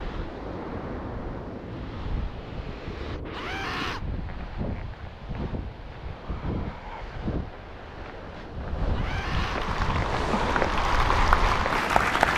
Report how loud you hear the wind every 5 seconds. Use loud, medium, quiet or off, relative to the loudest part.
medium, medium, loud.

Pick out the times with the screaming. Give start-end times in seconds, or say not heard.
3.3-4.0, 8.9-9.6.